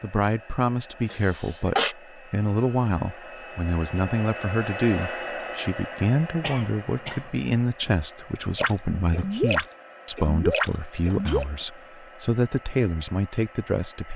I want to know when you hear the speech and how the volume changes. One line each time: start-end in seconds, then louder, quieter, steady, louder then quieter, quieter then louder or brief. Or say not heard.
0.0-14.1 steady.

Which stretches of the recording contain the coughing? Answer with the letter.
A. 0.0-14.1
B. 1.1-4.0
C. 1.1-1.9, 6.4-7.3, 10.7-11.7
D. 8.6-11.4
C.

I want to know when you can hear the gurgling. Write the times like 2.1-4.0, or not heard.
8.6-11.4.